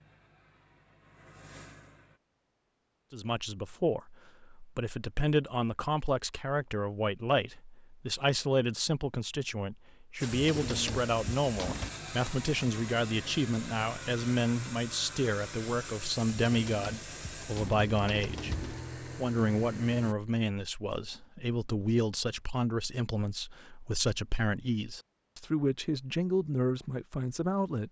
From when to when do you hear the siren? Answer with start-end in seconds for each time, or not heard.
not heard.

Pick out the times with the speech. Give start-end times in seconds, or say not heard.
3.1-27.8.